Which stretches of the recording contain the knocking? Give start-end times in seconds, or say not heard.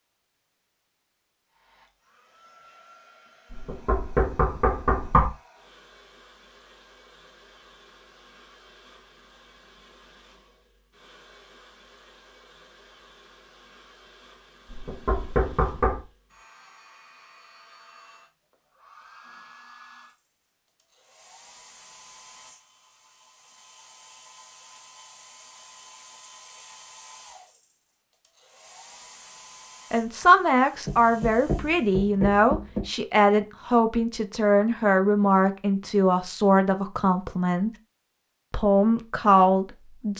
3.5-5.2, 14.7-16.1, 30.9-32.9.